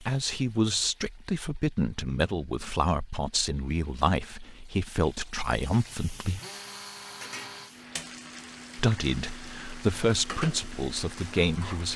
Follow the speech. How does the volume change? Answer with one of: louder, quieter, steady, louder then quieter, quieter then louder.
steady.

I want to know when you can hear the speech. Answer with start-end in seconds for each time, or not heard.
0.0-6.4, 8.8-11.9.